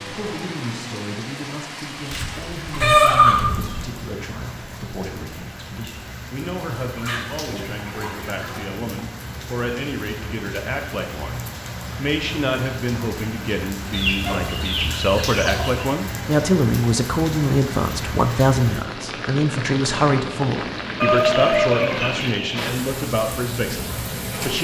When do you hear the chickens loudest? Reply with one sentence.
The loudest moment of the chickens is at 3 seconds.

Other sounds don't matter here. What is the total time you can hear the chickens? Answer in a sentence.
You can hear the chickens for 7 seconds altogether.